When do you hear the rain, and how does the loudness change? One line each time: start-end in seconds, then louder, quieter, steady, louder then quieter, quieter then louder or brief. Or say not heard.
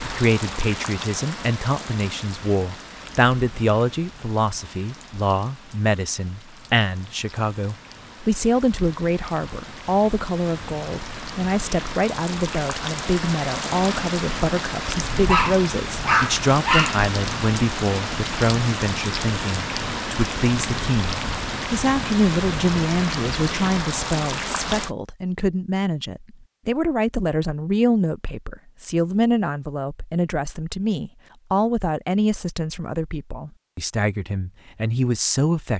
0.0-24.9 quieter then louder.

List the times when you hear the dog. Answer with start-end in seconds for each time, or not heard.
15.2-17.0.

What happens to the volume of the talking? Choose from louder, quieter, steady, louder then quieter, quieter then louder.
steady.